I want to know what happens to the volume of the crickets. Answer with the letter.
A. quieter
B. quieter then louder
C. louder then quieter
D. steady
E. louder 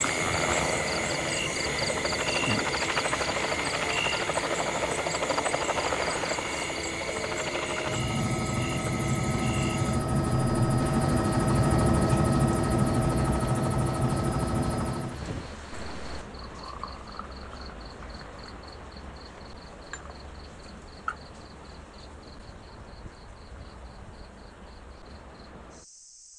A.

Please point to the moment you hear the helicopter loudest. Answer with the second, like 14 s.
12 s.